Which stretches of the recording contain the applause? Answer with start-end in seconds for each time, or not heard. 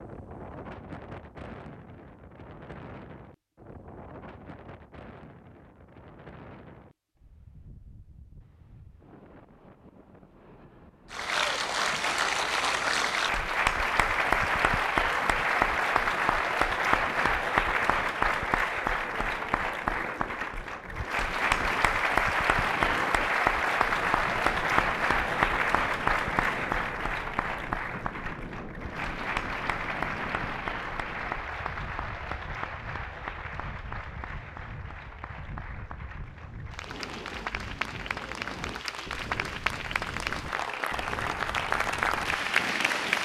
11.1-43.2.